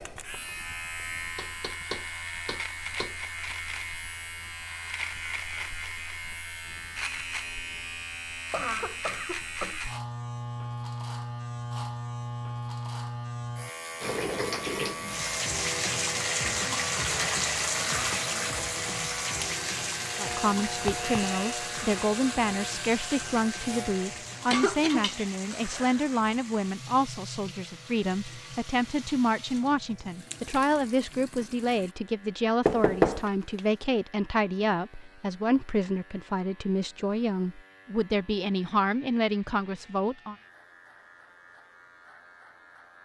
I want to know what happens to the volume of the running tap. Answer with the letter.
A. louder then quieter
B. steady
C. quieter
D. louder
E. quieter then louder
C.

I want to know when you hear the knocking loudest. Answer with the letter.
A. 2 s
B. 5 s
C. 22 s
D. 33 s
D.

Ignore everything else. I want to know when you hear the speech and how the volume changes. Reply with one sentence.
The speech can be heard from 20.1 to 40.4 s, at a steady volume.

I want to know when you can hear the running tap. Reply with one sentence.
The running tap can be heard from 14.0 to 31.9 s.